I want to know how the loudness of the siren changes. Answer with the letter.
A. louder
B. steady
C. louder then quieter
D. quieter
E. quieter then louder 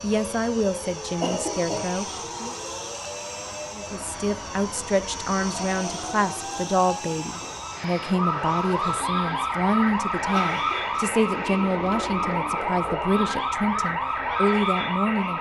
A.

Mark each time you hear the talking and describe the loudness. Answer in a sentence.
You can hear the talking briefly from 0.0 to 2.5 s; and from 3.7 to 15.3 s, at a steady volume.